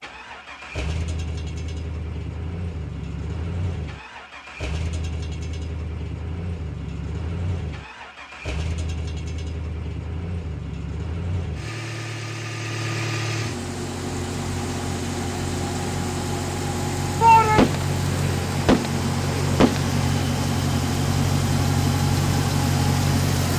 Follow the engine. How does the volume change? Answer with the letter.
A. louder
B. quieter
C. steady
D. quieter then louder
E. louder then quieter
A.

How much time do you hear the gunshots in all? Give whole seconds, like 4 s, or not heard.
3 s.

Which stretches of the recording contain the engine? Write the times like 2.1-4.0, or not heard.
0.0-23.5.